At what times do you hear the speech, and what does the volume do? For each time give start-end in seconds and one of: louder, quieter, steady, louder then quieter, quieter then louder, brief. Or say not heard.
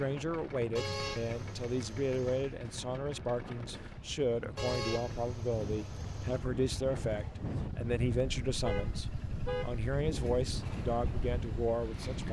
0.0-12.2 steady.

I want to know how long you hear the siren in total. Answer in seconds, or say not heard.
not heard.